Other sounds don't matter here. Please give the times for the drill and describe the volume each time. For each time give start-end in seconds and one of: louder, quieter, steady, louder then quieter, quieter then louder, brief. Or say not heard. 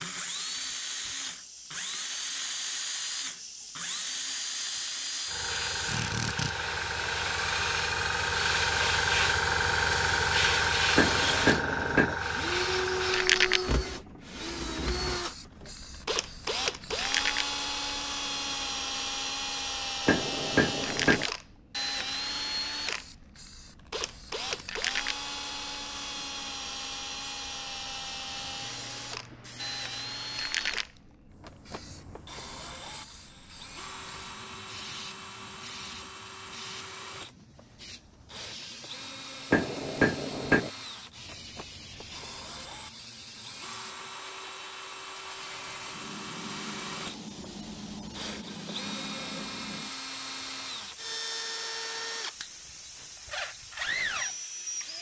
0.0-54.9 quieter then louder.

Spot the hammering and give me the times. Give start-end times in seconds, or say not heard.
10.9-12.2, 20.1-21.2, 39.5-40.7.